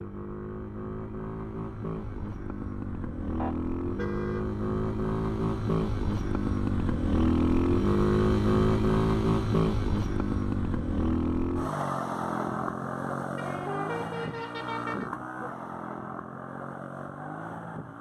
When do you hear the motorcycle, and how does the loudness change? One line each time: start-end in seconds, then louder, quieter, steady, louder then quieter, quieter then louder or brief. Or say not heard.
0.0-17.9 louder then quieter.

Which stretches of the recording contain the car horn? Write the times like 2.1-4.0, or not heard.
3.4-4.5, 13.3-15.1.